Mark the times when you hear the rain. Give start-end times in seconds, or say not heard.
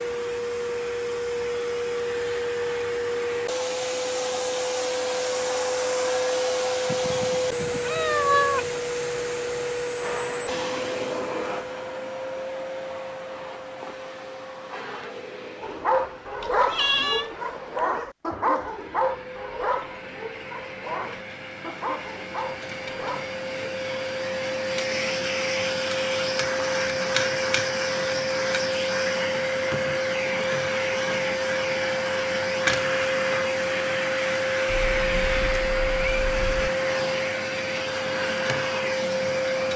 not heard.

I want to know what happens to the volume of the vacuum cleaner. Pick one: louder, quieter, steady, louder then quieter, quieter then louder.
quieter then louder.